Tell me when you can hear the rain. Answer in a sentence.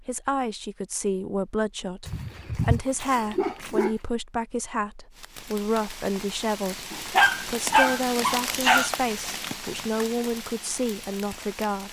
The rain can be heard from 5.1 to 11.8 s.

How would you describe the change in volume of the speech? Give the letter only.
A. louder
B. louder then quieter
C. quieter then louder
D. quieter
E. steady
E.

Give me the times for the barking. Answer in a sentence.
The barking can be heard from 2.0 to 4.0 s and from 6.9 to 8.9 s.